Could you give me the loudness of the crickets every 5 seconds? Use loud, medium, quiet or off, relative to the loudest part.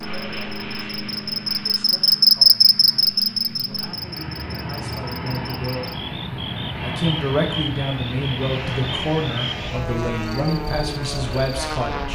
loud, quiet, quiet.